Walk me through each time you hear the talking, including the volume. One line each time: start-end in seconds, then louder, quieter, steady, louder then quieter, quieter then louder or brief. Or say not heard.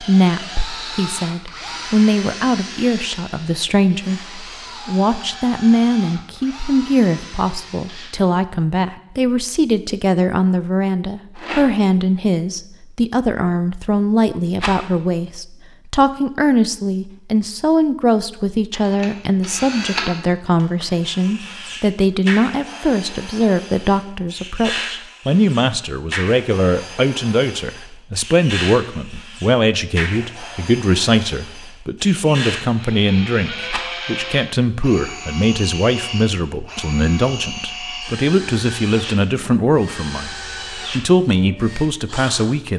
0.0-42.7 steady.